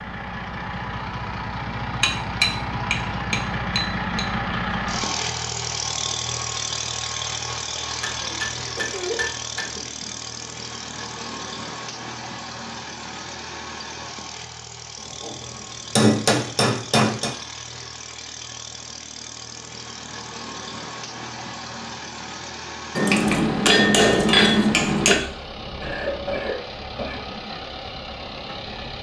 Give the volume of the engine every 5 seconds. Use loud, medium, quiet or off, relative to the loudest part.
loud, loud, medium, medium, medium, medium.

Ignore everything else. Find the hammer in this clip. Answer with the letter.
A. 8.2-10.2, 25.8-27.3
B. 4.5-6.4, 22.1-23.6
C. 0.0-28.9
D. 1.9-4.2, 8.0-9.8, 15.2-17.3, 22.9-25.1
D.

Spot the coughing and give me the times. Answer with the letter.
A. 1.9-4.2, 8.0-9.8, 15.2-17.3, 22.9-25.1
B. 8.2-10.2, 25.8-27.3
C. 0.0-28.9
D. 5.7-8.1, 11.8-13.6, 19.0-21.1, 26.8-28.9
B.